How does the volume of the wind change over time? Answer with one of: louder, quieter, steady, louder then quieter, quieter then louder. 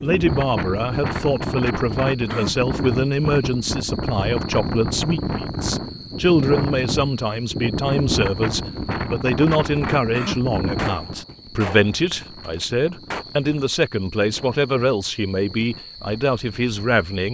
quieter.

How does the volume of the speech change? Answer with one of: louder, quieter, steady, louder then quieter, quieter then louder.
steady.